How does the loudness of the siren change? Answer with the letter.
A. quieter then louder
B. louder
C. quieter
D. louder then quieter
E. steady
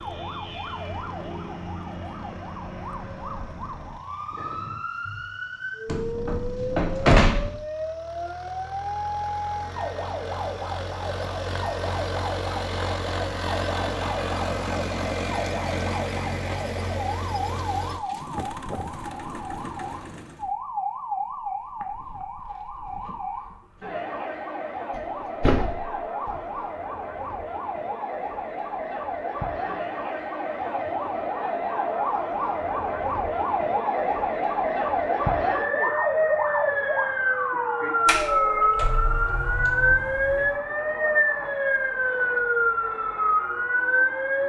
B.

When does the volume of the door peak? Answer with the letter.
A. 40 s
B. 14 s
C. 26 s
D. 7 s
D.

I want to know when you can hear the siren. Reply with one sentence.
The siren can be heard from 0.0 to 44.4 s.